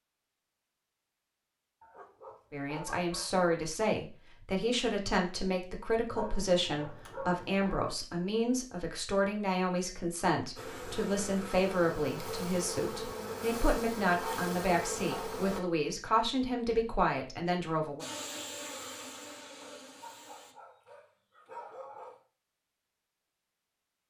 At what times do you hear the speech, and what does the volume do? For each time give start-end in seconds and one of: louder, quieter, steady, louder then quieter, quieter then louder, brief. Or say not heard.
2.5-18.1 steady.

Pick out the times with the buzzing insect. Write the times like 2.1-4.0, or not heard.
10.6-15.6, 18.0-20.6.